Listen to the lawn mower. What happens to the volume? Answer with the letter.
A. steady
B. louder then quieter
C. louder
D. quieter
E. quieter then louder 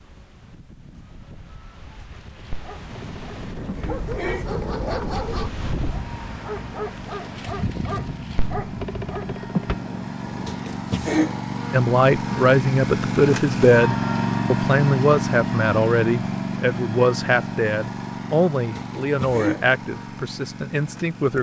B.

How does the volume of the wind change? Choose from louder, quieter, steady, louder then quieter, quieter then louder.
louder.